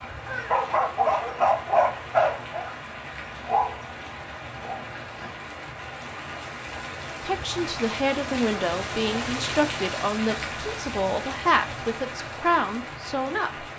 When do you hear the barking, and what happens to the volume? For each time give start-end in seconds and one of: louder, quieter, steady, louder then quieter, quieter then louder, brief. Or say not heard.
0.0-5.3 quieter.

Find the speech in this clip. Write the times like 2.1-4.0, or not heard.
7.2-13.7.